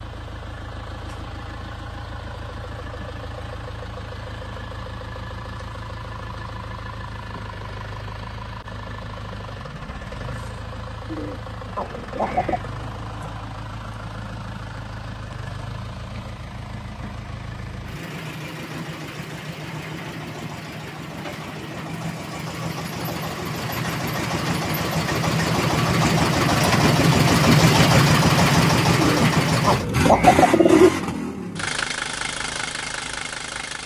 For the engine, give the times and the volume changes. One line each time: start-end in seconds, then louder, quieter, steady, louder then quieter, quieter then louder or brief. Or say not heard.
0.0-33.8 louder.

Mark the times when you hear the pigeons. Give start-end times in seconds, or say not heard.
11.1-12.6, 29.0-30.9.